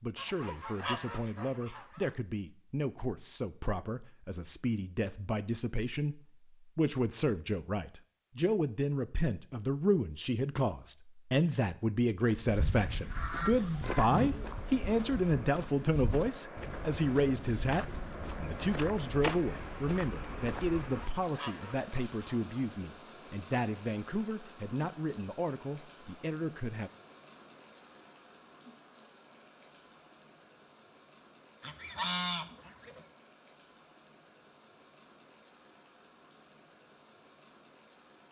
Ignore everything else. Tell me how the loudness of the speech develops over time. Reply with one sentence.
The volume of the speech goes up, then down.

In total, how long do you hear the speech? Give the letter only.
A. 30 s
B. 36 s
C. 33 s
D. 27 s
D.